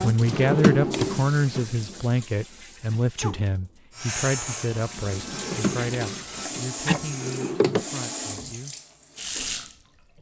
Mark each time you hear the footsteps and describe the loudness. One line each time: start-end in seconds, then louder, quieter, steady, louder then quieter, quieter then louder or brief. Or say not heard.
not heard.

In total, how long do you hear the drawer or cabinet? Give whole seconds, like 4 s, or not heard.
4 s.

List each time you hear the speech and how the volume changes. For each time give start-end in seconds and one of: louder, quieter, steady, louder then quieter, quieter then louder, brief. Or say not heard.
0.0-8.8 quieter.